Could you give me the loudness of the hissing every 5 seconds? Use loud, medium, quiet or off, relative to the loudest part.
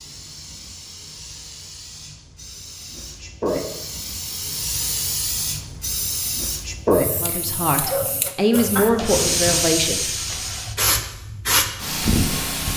medium, loud, loud.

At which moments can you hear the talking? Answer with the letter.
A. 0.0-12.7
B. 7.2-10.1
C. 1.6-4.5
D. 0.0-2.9
B.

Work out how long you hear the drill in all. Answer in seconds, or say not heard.
not heard.